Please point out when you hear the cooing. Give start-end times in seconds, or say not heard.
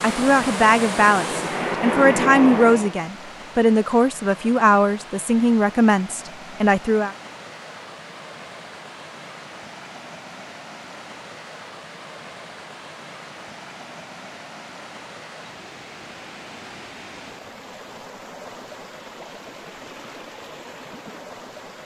not heard.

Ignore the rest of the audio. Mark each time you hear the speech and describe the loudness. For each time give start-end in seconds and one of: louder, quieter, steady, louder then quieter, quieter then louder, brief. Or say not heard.
0.0-7.2 steady.